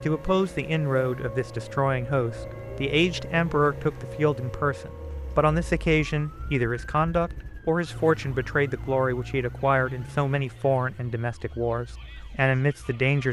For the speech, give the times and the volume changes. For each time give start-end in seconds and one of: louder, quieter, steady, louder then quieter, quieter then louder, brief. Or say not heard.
0.0-13.2 steady.